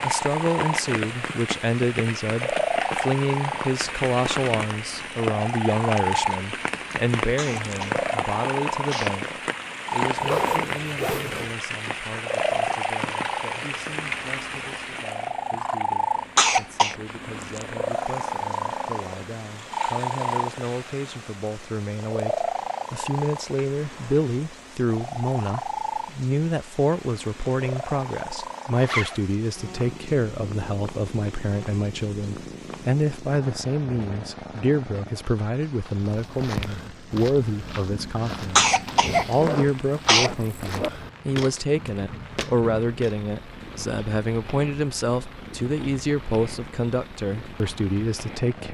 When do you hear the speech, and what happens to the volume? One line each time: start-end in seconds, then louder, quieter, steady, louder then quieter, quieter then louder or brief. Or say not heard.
0.0-48.7 quieter then louder.